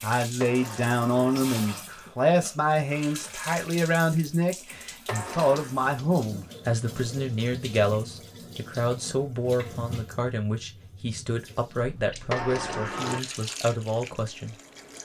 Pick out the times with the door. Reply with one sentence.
The door can be heard from 0.4 to 1.9 s, from 5.0 to 5.8 s and from 12.3 to 13.2 s.